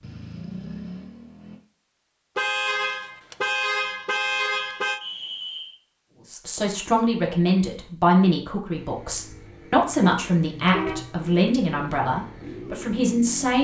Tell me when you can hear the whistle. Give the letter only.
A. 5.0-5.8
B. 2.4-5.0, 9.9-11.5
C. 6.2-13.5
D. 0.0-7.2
A.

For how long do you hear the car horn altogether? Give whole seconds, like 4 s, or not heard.
4 s.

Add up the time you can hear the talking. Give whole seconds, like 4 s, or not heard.
7 s.